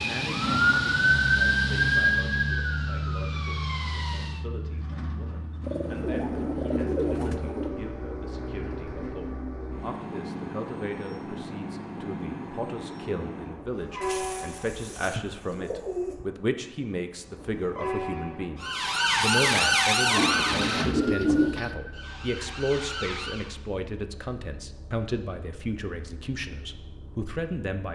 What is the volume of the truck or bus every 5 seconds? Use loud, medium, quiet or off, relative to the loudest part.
loud, loud, loud, medium, quiet, quiet.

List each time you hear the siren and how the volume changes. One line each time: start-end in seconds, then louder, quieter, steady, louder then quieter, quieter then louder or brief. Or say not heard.
0.0-4.4 quieter
18.6-23.6 quieter then louder.